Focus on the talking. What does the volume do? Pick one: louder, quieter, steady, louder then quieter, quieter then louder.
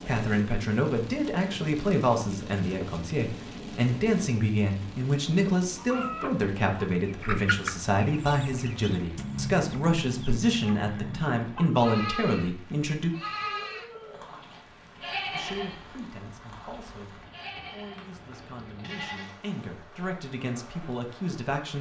quieter.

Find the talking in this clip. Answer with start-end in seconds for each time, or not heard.
0.1-13.1, 15.3-21.7.